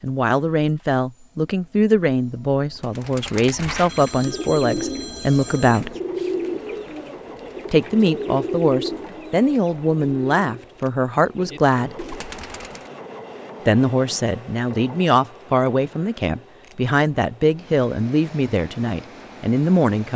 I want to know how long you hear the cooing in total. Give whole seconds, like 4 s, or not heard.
10 s.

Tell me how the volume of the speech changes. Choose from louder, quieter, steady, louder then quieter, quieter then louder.
steady.